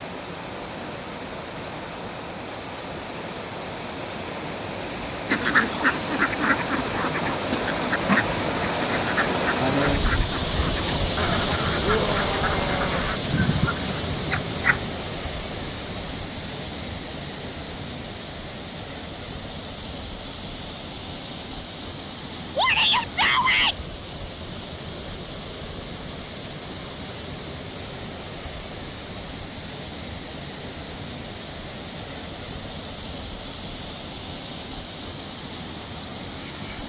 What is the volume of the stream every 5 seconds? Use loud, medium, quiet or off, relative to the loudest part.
medium, loud, loud, medium, medium, medium, medium, medium.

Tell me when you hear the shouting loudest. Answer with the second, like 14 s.
23 s.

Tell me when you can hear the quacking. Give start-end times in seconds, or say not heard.
5.2-14.8.